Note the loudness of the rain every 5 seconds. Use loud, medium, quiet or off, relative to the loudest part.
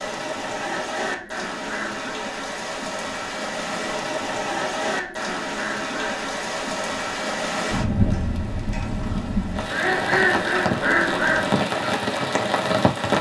medium, loud, loud.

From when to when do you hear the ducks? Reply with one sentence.
The ducks can be heard from 0.6 to 2.1 s, from 4.5 to 6.2 s and from 9.7 to 11.6 s.